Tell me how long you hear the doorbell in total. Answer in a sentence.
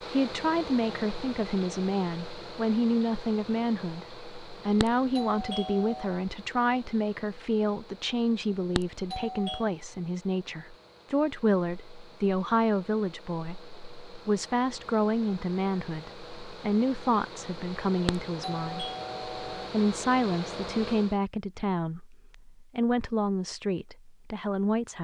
You can hear the doorbell for 4 seconds altogether.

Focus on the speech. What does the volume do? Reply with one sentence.
The volume of the speech stays about the same.